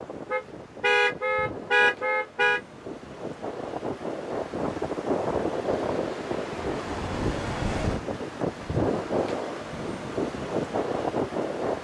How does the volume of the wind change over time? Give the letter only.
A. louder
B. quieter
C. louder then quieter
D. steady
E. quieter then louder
A.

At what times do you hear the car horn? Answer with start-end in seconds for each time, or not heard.
0.3-2.6.